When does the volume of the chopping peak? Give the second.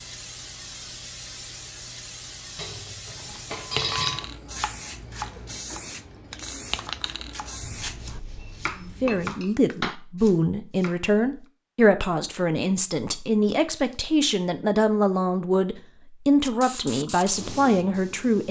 10 s.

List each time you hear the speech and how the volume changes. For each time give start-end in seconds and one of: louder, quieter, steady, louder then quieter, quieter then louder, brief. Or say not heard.
8.8-18.4 steady.